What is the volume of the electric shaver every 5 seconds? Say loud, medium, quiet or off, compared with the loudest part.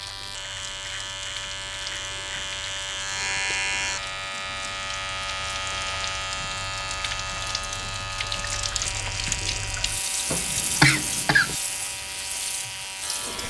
loud, loud, medium.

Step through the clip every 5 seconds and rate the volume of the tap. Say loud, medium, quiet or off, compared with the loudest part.
medium, loud, loud.